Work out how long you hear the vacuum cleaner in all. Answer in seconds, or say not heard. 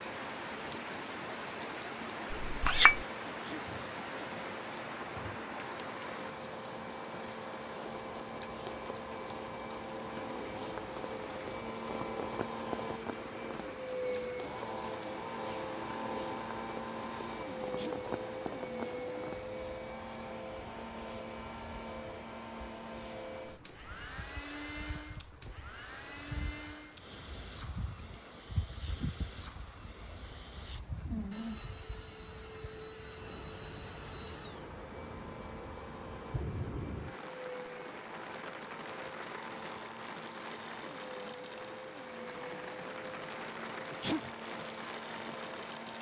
46 s.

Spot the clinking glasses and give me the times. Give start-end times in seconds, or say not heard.
2.4-3.0.